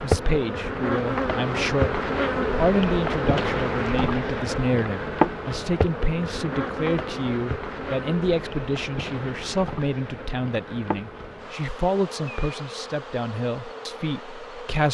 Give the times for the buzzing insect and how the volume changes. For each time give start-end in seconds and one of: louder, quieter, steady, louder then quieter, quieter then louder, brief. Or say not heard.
0.0-14.8 quieter.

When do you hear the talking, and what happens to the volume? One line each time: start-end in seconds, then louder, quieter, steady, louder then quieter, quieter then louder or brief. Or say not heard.
0.0-14.8 steady.